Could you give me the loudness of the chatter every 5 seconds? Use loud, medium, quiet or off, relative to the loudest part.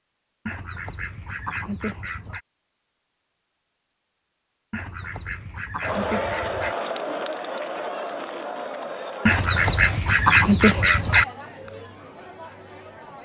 off, loud, medium.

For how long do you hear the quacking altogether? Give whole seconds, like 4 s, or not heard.
6 s.